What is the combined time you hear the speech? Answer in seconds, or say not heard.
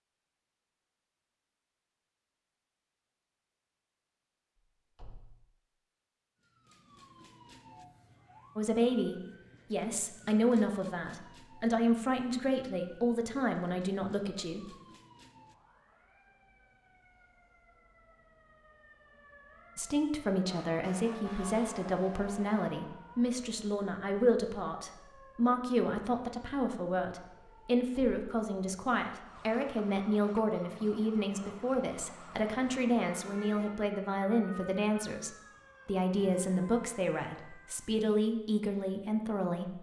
26 s.